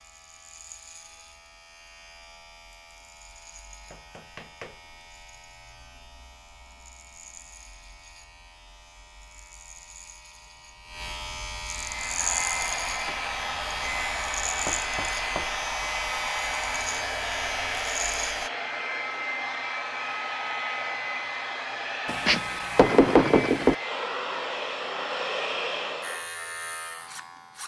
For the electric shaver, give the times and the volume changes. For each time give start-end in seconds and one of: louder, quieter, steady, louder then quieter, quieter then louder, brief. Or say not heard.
0.0-18.5 louder
26.0-27.6 brief.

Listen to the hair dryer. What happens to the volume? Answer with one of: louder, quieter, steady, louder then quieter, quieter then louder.
steady.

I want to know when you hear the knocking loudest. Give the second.
23 s.